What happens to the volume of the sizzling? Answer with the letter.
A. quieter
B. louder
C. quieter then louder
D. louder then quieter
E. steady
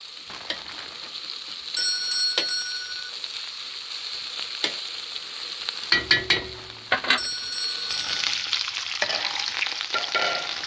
B.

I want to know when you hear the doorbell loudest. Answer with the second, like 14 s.
2 s.